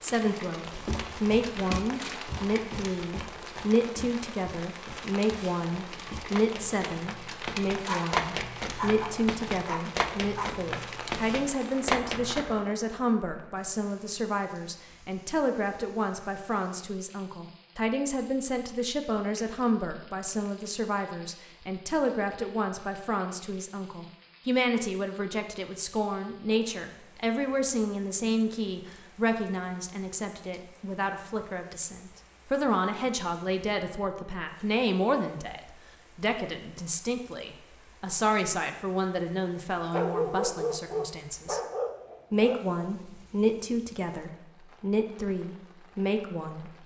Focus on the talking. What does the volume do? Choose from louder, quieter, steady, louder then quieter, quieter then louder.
steady.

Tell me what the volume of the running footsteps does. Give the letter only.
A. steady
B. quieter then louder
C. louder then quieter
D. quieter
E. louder
B.